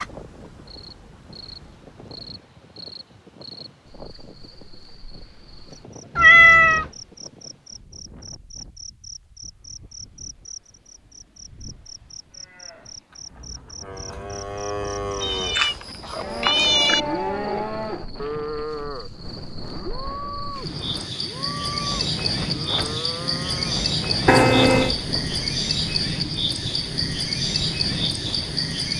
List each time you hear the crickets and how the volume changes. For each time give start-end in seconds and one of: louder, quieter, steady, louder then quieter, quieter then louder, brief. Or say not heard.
0.0-28.9 louder.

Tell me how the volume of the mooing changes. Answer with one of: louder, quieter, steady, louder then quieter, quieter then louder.
louder then quieter.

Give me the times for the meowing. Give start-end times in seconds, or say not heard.
6.2-6.8, 15.2-17.0, 24.2-24.9.